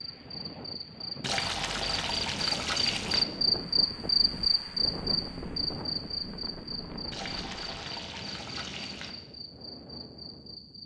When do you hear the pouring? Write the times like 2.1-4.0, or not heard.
1.2-3.2, 7.1-9.2.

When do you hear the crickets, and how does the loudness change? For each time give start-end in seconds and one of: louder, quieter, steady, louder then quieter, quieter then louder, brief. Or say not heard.
0.0-10.8 louder then quieter.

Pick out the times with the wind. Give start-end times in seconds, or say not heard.
0.0-10.8.